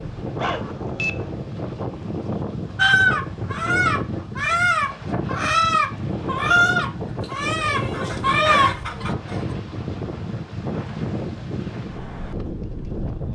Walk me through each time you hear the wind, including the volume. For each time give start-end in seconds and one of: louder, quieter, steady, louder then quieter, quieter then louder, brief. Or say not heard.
0.0-13.2 steady.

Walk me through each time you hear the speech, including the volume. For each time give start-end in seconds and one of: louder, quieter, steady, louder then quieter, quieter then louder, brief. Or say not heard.
not heard.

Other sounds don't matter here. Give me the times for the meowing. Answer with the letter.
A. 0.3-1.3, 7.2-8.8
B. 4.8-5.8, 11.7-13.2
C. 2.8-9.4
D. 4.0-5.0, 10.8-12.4
A.